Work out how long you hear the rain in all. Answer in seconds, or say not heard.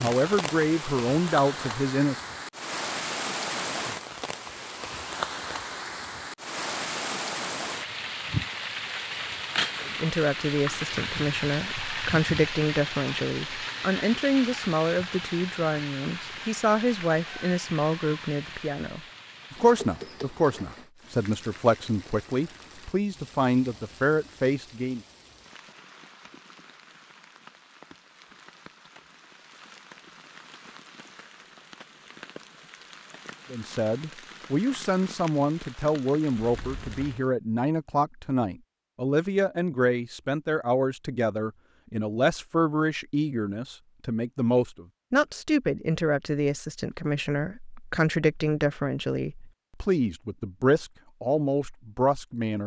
37 s.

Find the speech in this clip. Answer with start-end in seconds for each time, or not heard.
0.0-2.1, 9.8-25.0, 33.5-52.6.